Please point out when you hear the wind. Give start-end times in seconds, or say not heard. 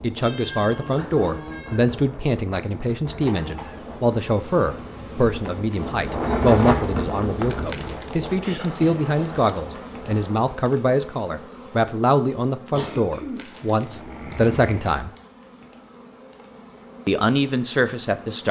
0.0-10.4.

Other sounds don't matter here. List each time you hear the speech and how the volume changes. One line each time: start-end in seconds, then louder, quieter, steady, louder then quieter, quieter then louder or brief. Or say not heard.
0.0-15.1 steady
17.1-18.4 brief.